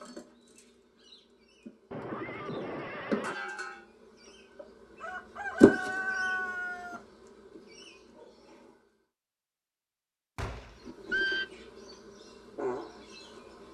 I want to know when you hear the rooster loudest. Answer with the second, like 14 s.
6 s.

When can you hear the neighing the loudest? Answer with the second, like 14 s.
11 s.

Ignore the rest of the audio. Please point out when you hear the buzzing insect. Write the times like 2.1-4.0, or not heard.
0.0-8.8, 10.8-13.7.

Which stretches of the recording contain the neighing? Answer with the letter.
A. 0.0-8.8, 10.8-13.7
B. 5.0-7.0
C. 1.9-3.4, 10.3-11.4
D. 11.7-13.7
C.